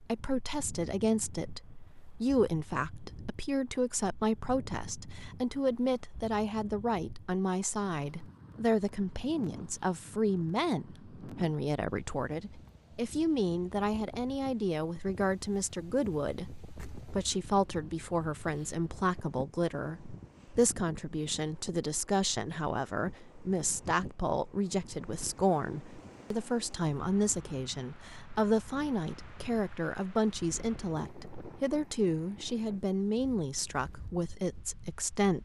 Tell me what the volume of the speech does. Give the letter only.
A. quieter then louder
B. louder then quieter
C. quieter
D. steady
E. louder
D.